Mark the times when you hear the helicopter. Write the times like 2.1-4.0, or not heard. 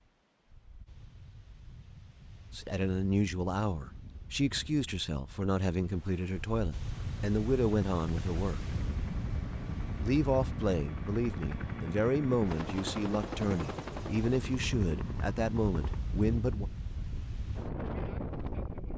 6.9-16.0.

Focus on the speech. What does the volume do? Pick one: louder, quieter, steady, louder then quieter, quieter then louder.
steady.